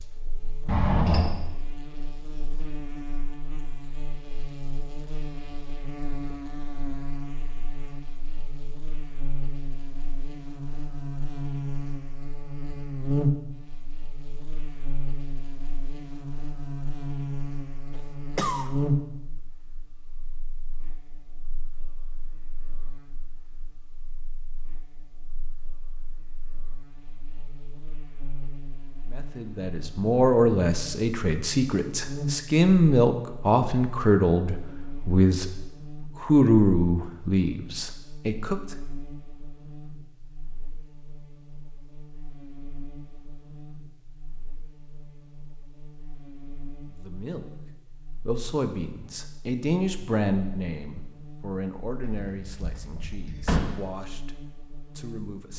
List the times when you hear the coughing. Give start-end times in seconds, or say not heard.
17.9-18.7.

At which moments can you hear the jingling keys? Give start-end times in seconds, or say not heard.
0.7-1.3, 52.0-53.7.